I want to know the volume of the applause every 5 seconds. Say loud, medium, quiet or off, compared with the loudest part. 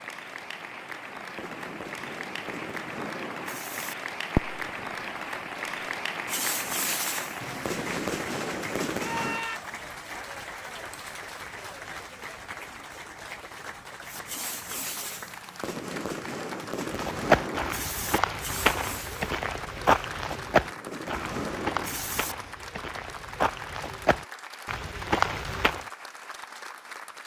loud, loud, medium, medium, medium, medium.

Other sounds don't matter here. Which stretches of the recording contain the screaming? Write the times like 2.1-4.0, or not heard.
8.9-9.6.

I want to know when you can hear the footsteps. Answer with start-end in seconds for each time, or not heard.
16.9-25.9.